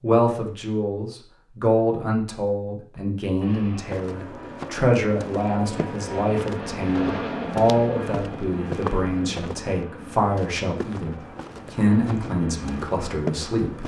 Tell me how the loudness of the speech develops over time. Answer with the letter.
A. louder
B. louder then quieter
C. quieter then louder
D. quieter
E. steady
E.